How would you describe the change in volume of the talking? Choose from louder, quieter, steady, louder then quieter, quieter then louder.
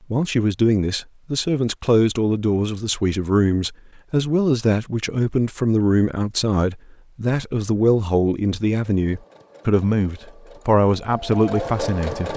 steady.